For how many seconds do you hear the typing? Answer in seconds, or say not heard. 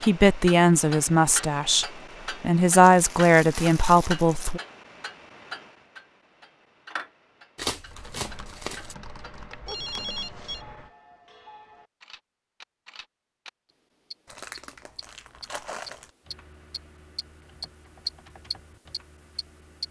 7 s.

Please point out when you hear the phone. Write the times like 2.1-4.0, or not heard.
9.7-10.7.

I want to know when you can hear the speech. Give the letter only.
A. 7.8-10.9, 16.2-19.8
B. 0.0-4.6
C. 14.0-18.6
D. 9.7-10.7
B.